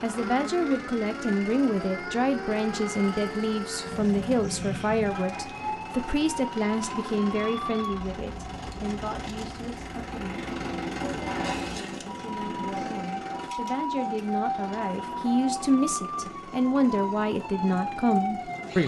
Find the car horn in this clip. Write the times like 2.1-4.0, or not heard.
11.2-11.9.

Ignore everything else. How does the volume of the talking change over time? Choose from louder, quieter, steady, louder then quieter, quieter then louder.
quieter then louder.